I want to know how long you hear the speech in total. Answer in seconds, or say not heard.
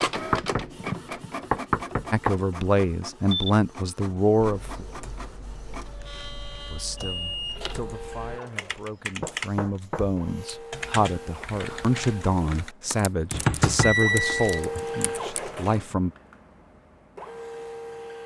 12 s.